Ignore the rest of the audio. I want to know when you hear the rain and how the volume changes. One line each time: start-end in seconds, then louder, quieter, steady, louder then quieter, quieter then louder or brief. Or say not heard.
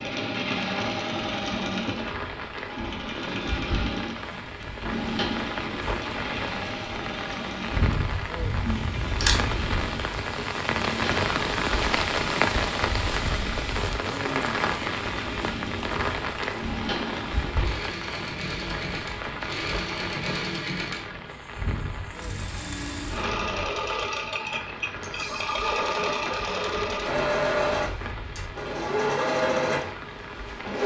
0.2-30.8 louder then quieter.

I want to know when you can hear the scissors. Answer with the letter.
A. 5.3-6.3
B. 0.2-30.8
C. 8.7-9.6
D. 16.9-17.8
C.